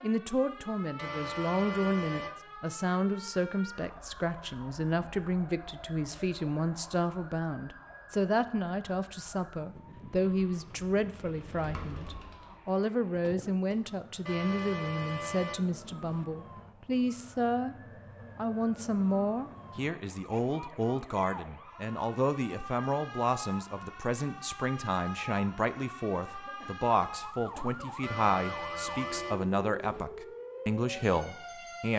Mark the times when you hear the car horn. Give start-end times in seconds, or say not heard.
0.9-2.4, 14.2-16.2, 28.0-30.1.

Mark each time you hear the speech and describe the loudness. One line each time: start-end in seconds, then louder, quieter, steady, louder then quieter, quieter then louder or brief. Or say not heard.
0.0-17.8 steady
18.4-31.9 steady.